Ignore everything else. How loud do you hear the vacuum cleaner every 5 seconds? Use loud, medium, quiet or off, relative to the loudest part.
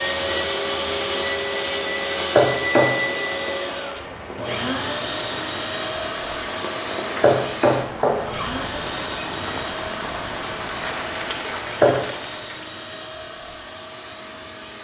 loud, medium, medium.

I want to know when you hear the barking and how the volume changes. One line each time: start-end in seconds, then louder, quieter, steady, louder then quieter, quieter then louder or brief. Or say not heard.
not heard.